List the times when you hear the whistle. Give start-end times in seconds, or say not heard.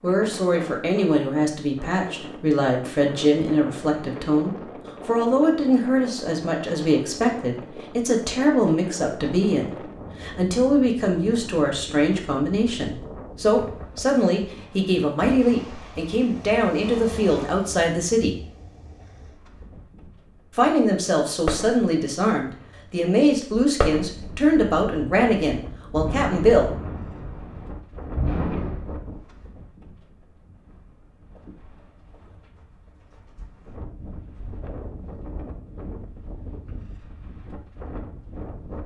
not heard.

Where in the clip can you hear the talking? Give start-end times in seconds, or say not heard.
0.0-18.4, 20.6-26.7.